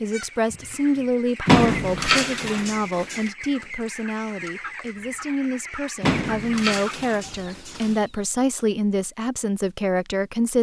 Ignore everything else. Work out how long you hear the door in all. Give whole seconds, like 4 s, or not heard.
4 s.